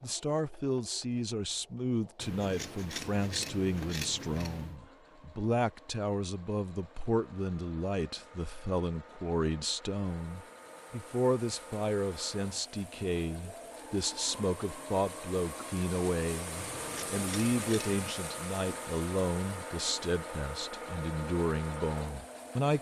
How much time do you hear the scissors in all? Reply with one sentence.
You can hear the scissors for 4 seconds altogether.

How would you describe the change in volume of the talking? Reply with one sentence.
The loudness of the talking stays about the same.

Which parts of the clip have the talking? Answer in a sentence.
You can hear the talking from 0.0 to 22.7 s.